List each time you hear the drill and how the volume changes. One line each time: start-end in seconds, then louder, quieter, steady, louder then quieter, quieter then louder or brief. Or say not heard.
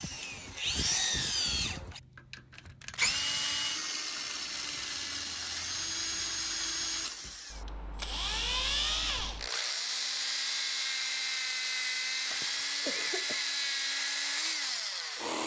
0.0-15.4 steady.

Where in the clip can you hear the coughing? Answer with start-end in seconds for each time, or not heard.
12.3-13.6.